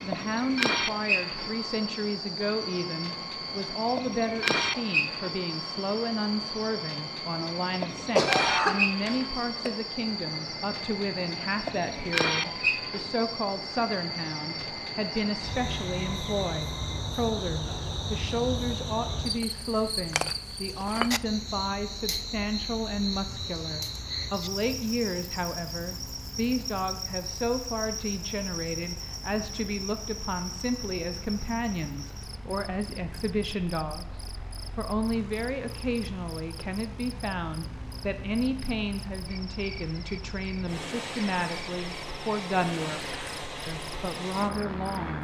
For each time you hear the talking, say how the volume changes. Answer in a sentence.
The talking can be heard from 0.0 to 45.1 s, at a steady volume.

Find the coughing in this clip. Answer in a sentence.
The coughing can be heard from 8.0 to 9.7 s.